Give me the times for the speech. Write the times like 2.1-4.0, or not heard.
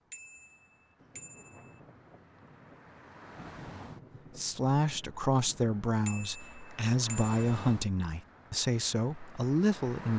4.3-10.1.